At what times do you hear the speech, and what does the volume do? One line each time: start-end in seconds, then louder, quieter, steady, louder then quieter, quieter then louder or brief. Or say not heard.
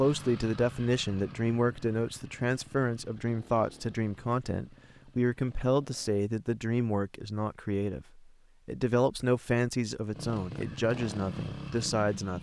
0.0-12.3 steady.